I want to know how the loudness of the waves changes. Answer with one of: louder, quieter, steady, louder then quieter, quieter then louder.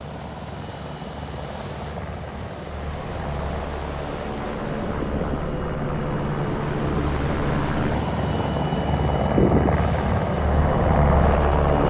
louder.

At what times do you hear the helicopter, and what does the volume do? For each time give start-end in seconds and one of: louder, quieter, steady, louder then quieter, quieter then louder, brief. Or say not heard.
0.0-11.8 louder.